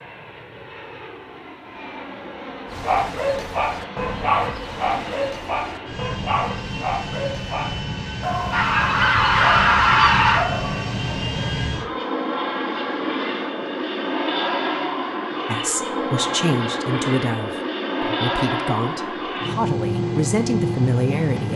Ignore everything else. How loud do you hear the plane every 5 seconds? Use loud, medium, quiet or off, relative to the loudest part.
medium, medium, loud, loud, loud.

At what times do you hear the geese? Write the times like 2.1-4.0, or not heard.
8.5-10.4.